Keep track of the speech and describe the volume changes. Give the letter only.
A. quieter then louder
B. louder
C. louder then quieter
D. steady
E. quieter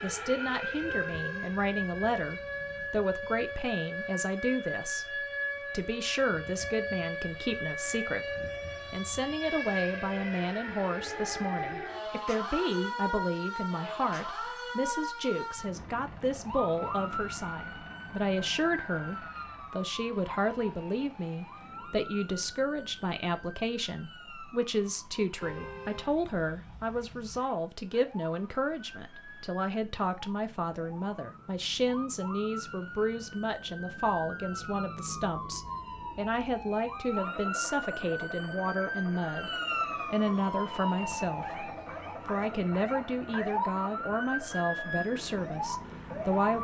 D.